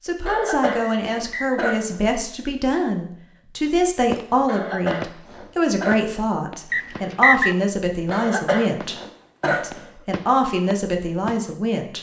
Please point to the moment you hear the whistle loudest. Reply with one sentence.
The loudest moment of the whistle is at 7 seconds.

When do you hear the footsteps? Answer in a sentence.
The footsteps can't be heard in this clip.